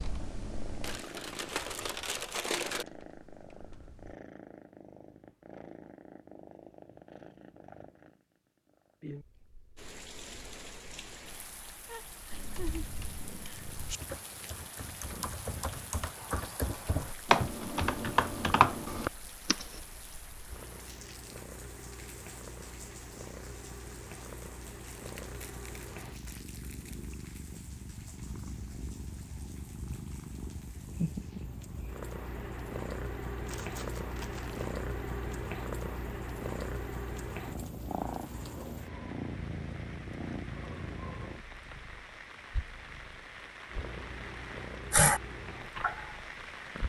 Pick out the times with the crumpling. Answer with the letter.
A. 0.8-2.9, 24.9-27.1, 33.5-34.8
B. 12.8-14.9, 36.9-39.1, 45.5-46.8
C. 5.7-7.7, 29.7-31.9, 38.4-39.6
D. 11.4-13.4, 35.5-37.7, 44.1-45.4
A.